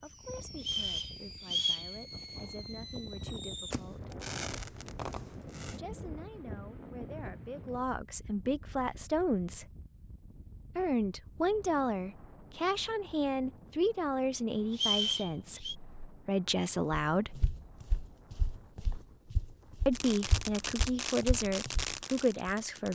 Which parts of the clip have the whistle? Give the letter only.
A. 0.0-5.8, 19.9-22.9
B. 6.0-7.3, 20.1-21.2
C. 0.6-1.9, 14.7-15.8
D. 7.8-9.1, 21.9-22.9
C.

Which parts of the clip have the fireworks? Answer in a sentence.
The fireworks can be heard from 0.0 to 5.8 s and from 19.9 to 22.9 s.